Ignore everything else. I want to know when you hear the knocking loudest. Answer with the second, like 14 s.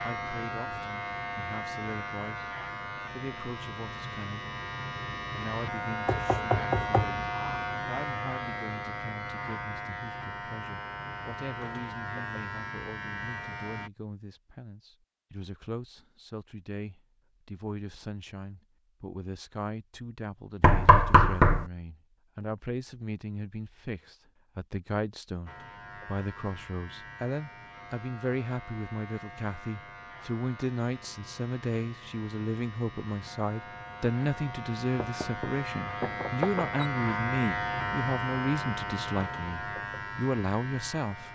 21 s.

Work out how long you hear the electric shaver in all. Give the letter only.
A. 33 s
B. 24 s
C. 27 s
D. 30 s
D.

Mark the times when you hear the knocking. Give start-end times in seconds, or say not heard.
6.0-7.4, 20.6-21.6, 35.0-36.9.